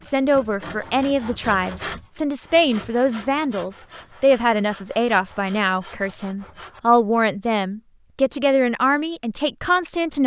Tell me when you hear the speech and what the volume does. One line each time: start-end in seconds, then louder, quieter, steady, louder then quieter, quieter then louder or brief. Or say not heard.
0.0-10.2 steady.